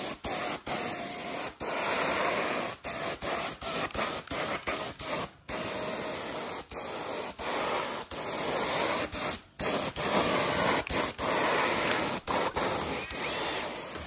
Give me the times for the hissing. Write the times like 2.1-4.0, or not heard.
0.0-14.0.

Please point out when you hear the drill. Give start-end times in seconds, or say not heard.
11.8-14.0.